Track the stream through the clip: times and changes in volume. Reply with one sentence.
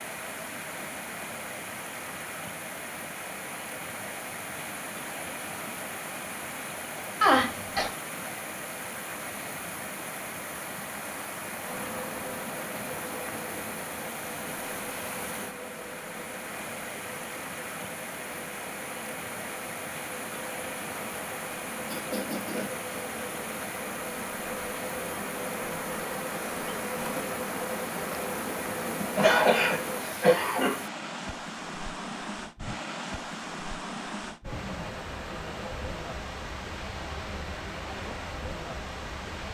You can hear the stream from 0.0 to 39.5 s, at a steady volume.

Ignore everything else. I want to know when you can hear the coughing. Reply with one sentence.
You can hear the coughing from 7.2 to 7.9 s, from 21.9 to 22.8 s and from 29.0 to 30.8 s.